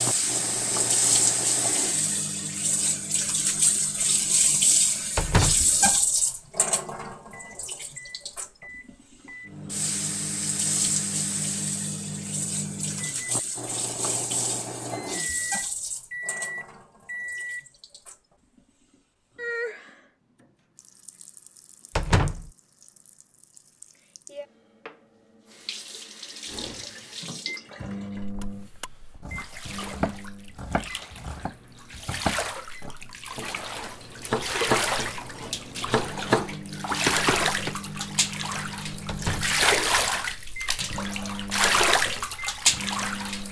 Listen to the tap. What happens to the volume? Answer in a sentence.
The loudness of the tap goes down, then up.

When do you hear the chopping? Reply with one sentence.
The chopping can be heard from 28.4 to 37.8 s.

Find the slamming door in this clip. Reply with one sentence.
You can hear the slamming door from 5.2 to 5.7 s, from 21.9 to 22.5 s and from 39.0 to 39.6 s.